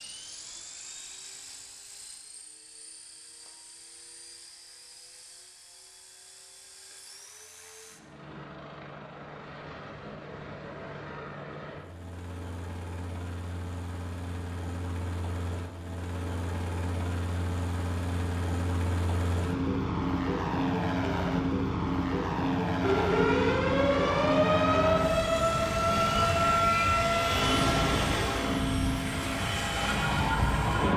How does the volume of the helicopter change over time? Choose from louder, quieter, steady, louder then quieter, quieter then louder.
louder.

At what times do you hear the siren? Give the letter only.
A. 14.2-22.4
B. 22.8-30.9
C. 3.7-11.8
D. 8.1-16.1
B.